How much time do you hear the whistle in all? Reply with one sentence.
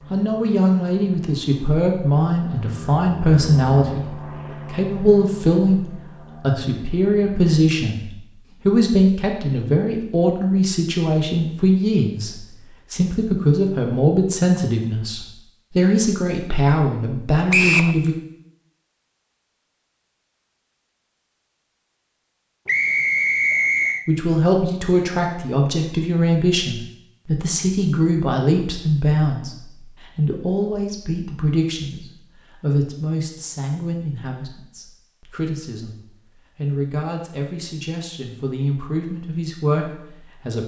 You can hear the whistle for 2 seconds altogether.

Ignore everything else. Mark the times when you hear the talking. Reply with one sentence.
The talking can be heard from 0.1 to 18.1 s and from 24.1 to 40.6 s.